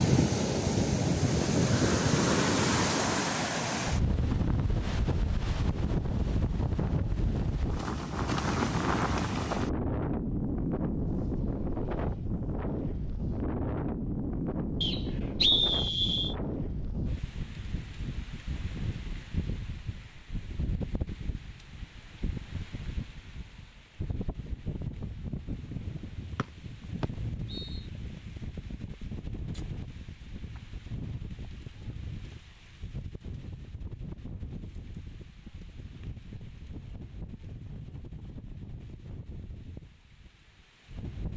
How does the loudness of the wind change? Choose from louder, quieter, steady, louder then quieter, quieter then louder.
quieter.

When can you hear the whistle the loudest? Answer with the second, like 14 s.
16 s.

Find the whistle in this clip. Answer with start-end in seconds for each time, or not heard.
14.8-16.4, 26.4-27.8.